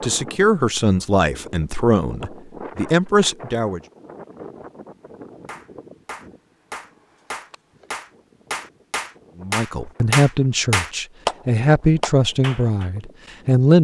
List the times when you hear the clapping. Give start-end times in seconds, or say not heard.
5.5-11.3, 12.0-12.9.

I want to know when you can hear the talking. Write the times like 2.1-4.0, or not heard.
0.0-3.8, 9.4-13.7.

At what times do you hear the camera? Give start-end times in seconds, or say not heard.
not heard.